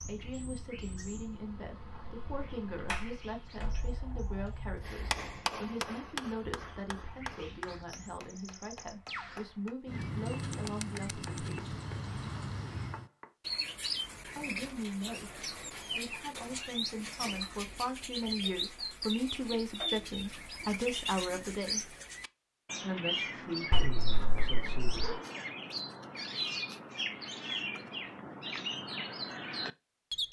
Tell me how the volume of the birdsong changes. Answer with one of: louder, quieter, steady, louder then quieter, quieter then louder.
louder.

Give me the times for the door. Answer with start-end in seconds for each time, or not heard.
2.9-5.3, 23.7-25.1.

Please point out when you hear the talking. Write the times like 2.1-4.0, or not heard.
0.1-11.8, 14.2-21.9, 22.8-25.1.